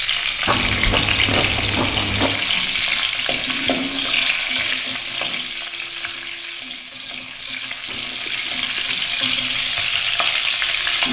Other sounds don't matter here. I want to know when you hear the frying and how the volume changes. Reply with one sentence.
The frying can be heard from 0.0 to 11.0 s, getting quieter then louder.